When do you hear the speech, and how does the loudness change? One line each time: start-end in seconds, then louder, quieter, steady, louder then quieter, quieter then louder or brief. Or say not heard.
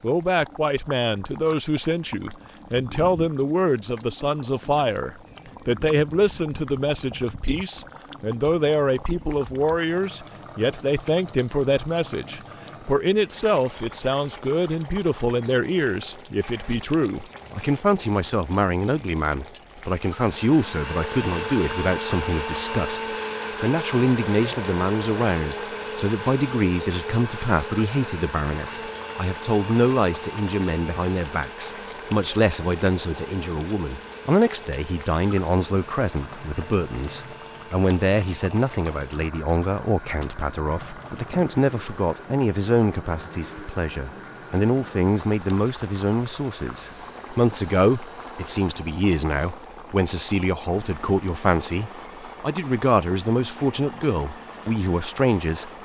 0.0-55.7 steady.